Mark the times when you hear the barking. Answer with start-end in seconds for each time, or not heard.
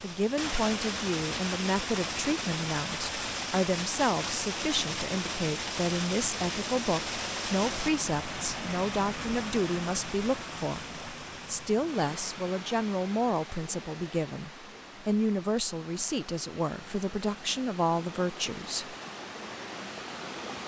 not heard.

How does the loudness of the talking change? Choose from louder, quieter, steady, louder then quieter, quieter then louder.
steady.